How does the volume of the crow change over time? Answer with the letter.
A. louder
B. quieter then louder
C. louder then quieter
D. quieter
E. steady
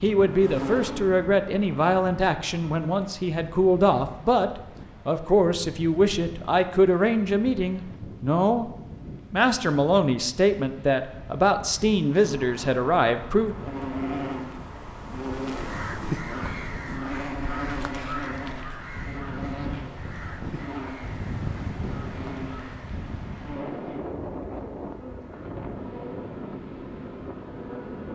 D.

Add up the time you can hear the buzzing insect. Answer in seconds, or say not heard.
19 s.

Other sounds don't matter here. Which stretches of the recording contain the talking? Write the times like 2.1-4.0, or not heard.
0.0-8.7, 9.3-13.6.